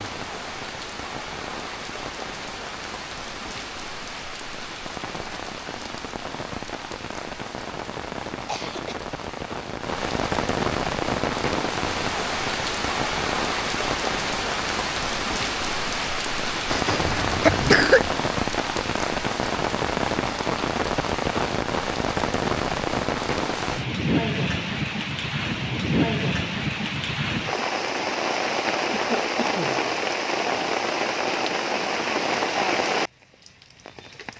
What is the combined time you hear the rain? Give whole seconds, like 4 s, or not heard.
34 s.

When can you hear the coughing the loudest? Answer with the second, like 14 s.
18 s.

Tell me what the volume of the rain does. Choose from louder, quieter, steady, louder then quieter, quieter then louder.
louder.